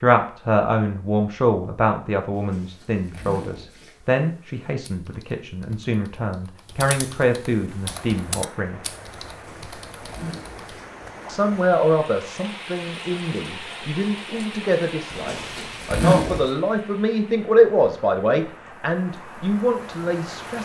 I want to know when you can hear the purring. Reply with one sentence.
The purring can't be heard in this clip.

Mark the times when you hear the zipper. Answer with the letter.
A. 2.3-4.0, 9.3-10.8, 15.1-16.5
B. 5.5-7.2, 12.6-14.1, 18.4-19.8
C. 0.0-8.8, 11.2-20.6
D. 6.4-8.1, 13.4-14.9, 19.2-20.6
A.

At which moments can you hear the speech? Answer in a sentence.
The speech can be heard from 0.0 to 8.8 s and from 11.2 to 20.6 s.